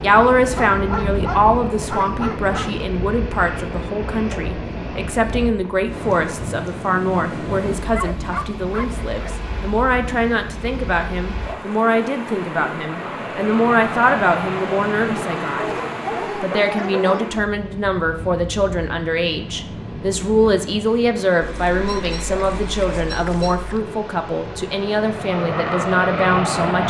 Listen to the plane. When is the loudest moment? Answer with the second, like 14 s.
26 s.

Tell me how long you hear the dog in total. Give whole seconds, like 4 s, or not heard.
8 s.